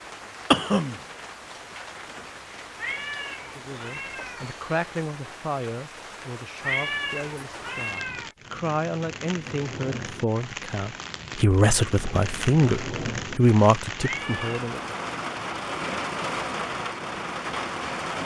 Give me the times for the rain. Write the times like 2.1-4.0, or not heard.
0.0-18.2.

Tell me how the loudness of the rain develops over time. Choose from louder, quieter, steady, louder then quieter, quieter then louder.
louder.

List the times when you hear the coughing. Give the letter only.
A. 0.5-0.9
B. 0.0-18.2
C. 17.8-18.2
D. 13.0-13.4
A.